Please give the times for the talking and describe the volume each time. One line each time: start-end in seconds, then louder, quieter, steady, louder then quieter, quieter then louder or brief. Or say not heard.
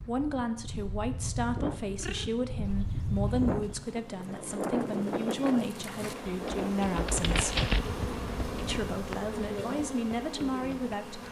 0.1-7.7 steady
8.6-11.2 brief.